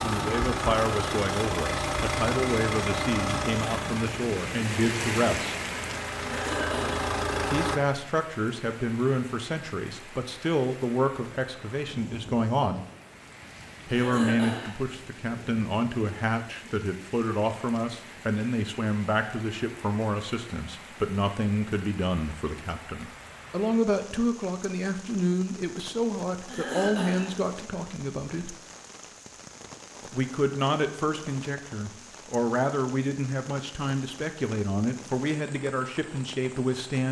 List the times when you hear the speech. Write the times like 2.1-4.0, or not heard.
0.0-5.5, 7.5-12.8, 13.8-28.6, 30.1-37.0.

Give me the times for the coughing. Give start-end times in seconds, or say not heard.
6.2-7.0, 13.9-14.8, 26.4-27.3.